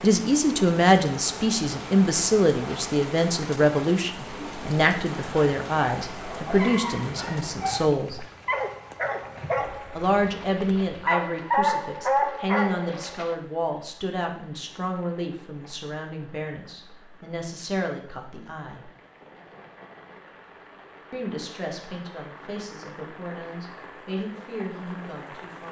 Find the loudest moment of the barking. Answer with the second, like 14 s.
12 s.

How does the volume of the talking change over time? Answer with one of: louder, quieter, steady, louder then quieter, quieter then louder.
quieter.